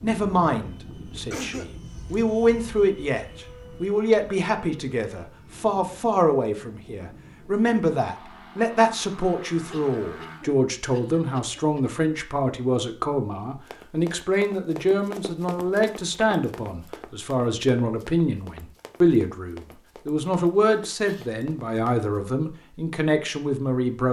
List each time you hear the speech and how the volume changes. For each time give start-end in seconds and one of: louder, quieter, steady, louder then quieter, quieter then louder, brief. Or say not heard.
0.0-24.0 steady.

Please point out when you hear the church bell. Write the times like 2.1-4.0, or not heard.
not heard.